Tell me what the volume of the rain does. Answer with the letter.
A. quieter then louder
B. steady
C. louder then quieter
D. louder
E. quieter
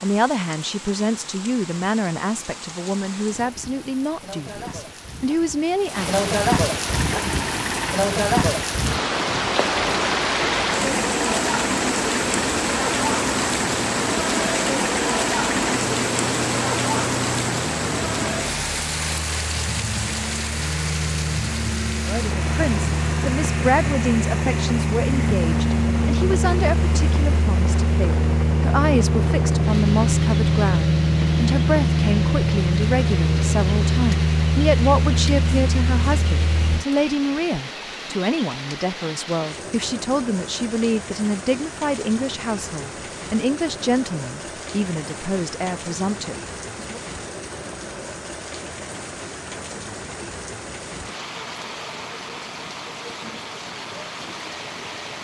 E.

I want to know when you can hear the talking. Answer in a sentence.
You can hear the talking from 0.0 to 6.2 s and from 22.1 to 47.0 s.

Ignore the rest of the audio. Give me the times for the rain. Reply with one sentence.
You can hear the rain from 0.0 to 55.1 s.